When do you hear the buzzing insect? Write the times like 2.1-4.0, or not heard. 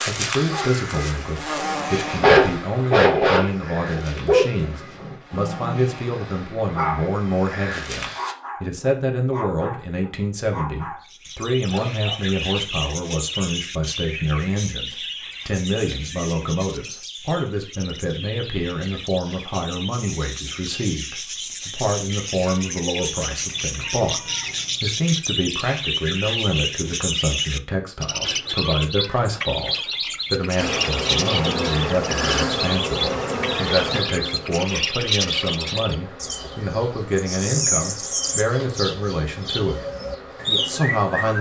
0.0-8.3, 30.6-41.3.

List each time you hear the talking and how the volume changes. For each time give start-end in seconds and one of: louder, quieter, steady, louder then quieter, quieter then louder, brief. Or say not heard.
0.1-39.8 steady
40.5-41.3 brief.